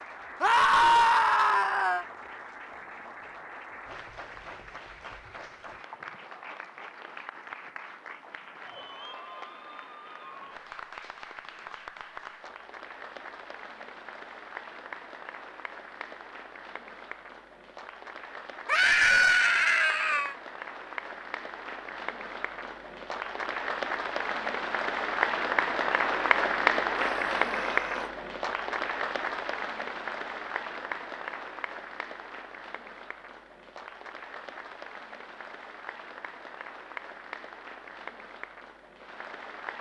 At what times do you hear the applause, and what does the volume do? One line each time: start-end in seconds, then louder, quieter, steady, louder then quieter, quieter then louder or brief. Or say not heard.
0.0-39.7 louder then quieter.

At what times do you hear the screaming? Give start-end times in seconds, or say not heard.
0.4-2.0, 18.6-20.4, 26.9-28.1.